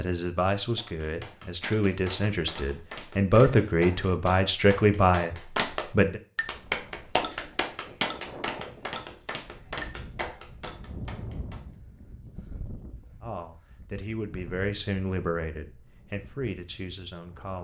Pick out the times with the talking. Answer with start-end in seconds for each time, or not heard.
0.0-6.2, 13.2-17.5.